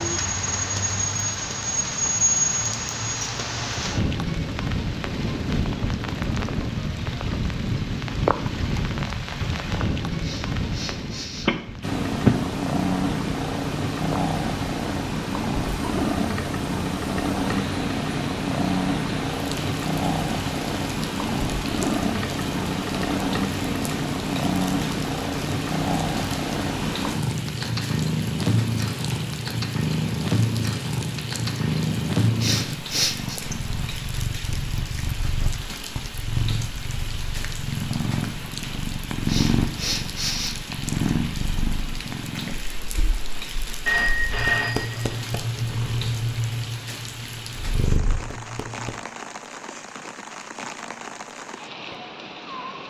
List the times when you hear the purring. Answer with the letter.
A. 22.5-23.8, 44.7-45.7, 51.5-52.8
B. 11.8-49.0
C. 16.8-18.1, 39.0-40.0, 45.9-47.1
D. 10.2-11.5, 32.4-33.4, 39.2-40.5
B.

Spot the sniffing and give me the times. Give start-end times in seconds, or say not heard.
10.2-11.5, 32.4-33.4, 39.2-40.5.